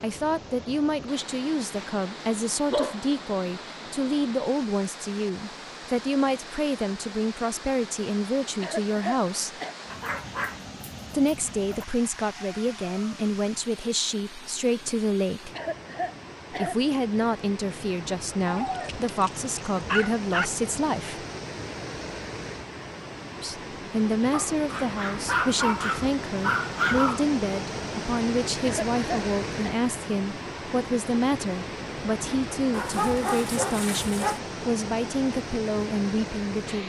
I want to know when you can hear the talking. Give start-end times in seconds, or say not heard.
0.0-9.5, 11.1-15.5, 16.5-21.2, 23.4-36.8.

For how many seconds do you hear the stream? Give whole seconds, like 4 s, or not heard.
37 s.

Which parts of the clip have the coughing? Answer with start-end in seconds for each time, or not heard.
8.6-9.8, 15.6-16.8, 28.6-29.8.